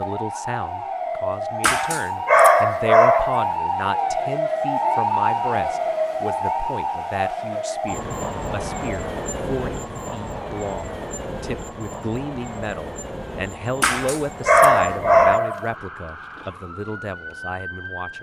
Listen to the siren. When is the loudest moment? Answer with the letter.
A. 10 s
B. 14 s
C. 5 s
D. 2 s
C.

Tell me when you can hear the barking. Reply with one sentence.
You can hear the barking from 1.6 to 3.5 s and from 13.8 to 15.7 s.